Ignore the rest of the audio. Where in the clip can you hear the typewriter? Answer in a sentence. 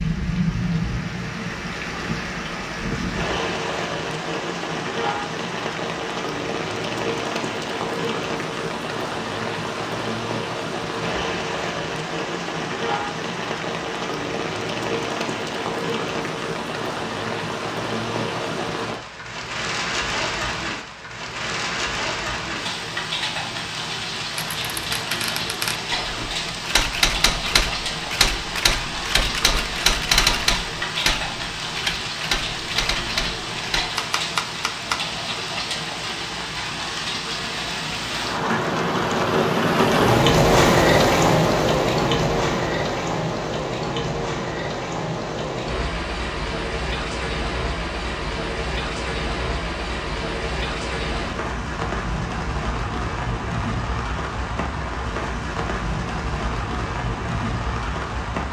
You can hear the typewriter from 24.4 to 35.0 s.